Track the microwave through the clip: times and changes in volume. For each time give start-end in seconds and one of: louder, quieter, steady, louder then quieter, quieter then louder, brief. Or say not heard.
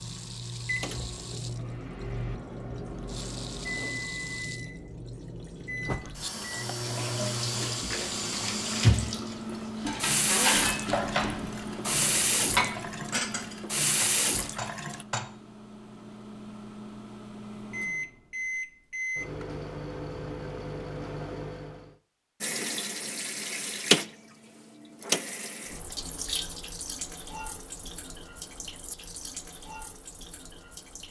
0.0-21.9 quieter then louder.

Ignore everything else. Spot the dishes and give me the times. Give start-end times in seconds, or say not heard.
9.8-15.2.